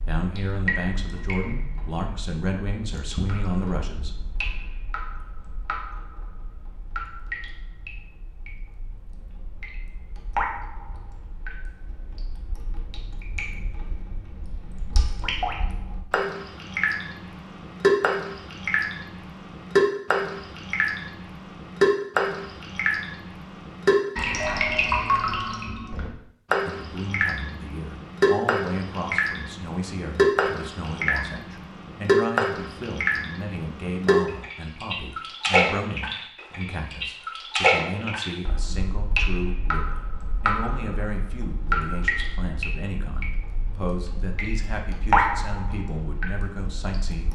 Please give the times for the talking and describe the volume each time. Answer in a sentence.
You can hear the talking from 0.1 to 4.2 s, at a steady volume; and from 26.6 to 47.3 s, at a steady volume.